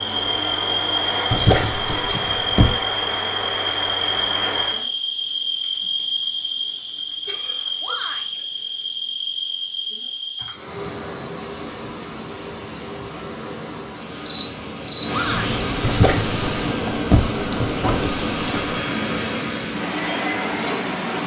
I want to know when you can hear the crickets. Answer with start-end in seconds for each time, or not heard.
0.0-16.5.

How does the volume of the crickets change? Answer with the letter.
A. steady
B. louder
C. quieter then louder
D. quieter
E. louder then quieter
D.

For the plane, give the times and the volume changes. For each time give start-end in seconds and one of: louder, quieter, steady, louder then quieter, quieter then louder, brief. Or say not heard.
0.0-4.8 steady
10.5-21.2 louder.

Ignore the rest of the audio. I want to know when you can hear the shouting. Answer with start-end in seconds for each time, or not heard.
7.8-8.4, 15.1-15.6.